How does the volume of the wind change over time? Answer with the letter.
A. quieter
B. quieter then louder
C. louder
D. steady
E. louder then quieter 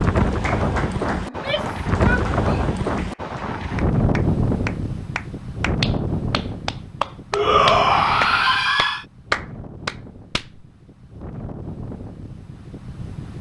A.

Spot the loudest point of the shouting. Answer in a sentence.
The volume of the shouting peaks at 8 seconds.